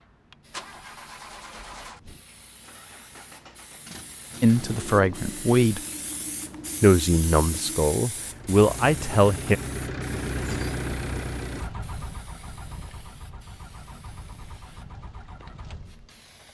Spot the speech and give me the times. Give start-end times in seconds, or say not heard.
4.4-5.8, 6.8-9.6.